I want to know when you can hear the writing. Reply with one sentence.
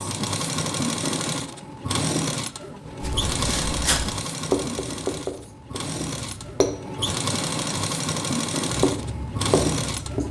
You can hear the writing from 3.0 to 6.8 s and from 8.7 to 10.2 s.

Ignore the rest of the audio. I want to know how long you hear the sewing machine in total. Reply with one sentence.
You can hear the sewing machine for 10 seconds altogether.